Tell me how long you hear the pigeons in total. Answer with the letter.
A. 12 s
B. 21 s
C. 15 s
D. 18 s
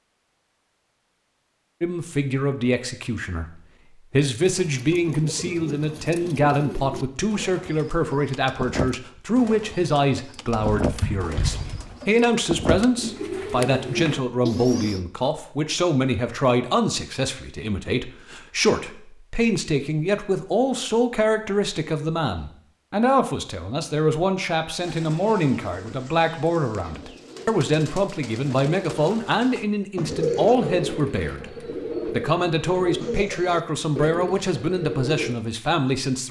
B.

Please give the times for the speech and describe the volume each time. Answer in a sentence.
You can hear the speech from 1.8 to 36.2 s, at a steady volume.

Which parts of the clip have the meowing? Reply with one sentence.
The meowing can be heard from 10.5 to 11.9 s.